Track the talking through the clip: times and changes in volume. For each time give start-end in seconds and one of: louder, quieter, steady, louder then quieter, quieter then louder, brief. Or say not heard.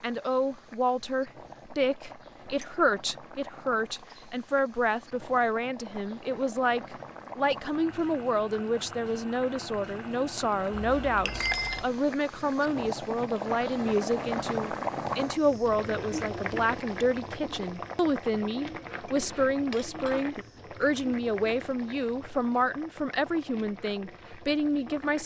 0.0-25.2 steady.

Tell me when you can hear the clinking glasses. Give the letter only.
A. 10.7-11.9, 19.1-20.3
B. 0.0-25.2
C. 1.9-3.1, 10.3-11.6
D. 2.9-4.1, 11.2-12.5
A.